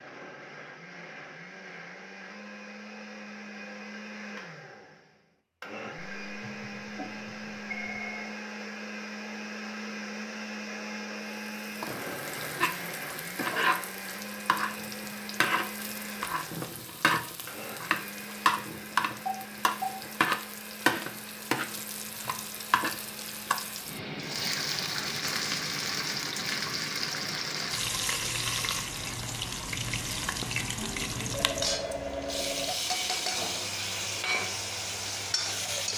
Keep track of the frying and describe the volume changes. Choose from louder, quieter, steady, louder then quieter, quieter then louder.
steady.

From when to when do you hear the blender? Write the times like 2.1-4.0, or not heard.
0.0-35.9.